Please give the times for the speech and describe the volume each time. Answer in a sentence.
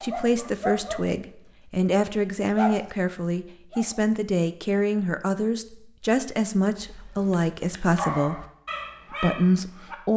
You can hear the speech from 0.0 to 8.4 s, at a steady volume; and briefly from 9.1 to 10.1 s.